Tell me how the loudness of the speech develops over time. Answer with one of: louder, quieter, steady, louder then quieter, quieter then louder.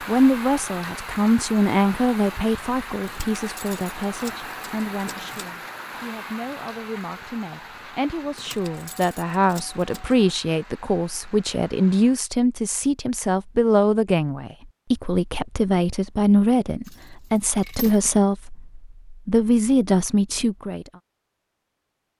quieter then louder.